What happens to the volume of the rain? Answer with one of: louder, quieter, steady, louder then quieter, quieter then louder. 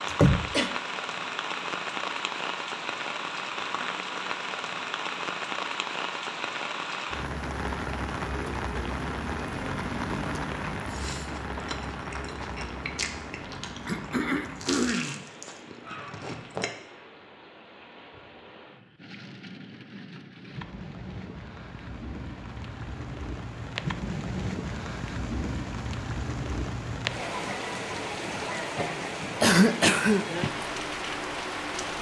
quieter then louder.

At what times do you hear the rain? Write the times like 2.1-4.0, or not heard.
0.0-31.9.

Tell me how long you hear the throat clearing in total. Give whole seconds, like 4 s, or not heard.
3 s.